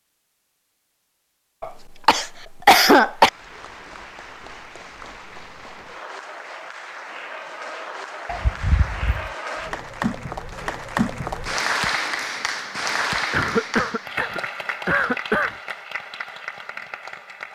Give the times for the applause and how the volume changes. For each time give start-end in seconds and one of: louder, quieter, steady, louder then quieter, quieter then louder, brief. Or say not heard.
3.0-17.5 louder then quieter.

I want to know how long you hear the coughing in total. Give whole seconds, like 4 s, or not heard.
5 s.